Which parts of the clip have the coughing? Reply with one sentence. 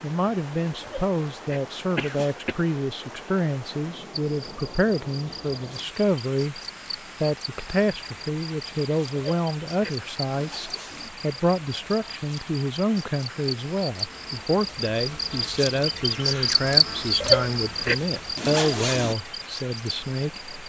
The coughing can be heard from 1.9 to 2.5 s.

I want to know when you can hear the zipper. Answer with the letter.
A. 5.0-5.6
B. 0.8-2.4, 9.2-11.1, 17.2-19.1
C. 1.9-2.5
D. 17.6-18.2
B.